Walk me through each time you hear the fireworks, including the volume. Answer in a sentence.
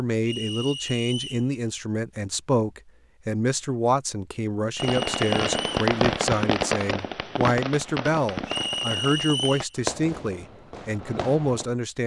You can hear the fireworks from 4.8 to 11.7 s, getting quieter.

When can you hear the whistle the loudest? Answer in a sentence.
The volume of the whistle peaks at 9 seconds.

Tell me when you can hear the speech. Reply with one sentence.
The speech can be heard from 0.0 to 12.0 s.